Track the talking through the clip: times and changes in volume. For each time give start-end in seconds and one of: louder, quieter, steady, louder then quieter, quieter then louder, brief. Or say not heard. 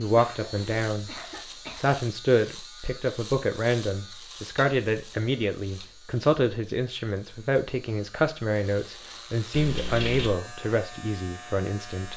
0.0-12.1 steady.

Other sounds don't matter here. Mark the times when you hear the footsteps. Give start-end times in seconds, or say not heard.
not heard.